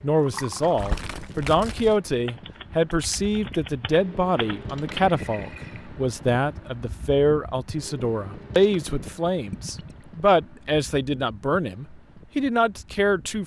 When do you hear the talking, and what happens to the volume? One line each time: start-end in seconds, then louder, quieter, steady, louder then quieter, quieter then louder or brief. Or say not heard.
0.0-13.4 steady.